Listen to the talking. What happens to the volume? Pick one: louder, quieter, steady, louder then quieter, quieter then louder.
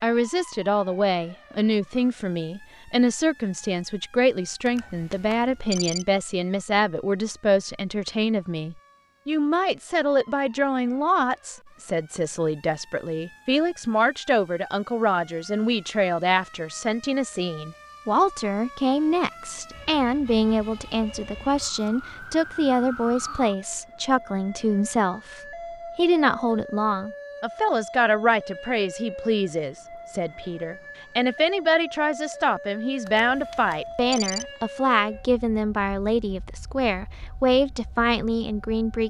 steady.